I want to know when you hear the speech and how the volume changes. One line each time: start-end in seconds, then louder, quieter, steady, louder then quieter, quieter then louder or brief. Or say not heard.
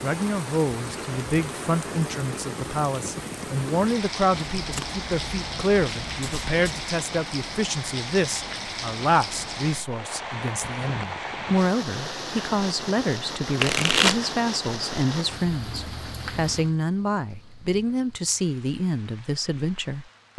0.0-20.3 steady.